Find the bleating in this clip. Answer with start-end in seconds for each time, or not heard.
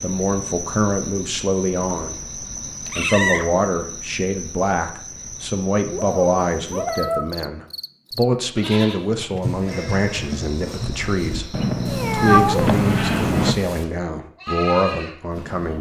8.6-15.7.